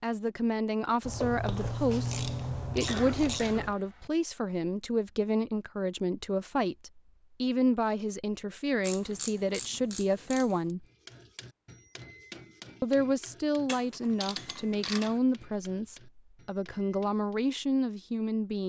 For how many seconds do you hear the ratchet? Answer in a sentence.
You can hear the ratchet for 6 seconds altogether.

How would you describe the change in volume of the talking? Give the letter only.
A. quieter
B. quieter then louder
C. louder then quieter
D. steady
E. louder
D.